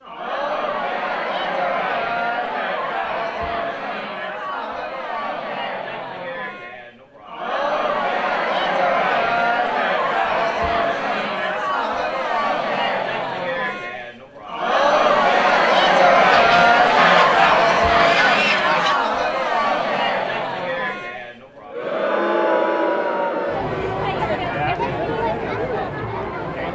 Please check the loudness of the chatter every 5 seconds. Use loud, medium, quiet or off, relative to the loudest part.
medium, medium, medium, loud, medium, medium.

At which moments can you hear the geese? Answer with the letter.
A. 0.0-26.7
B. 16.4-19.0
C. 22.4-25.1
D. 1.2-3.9
B.